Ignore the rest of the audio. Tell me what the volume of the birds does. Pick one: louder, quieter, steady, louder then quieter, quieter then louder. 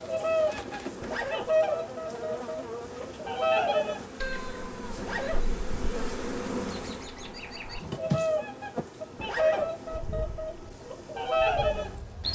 quieter then louder.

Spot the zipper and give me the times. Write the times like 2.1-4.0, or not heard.
1.0-1.5, 5.0-5.5, 9.2-9.7.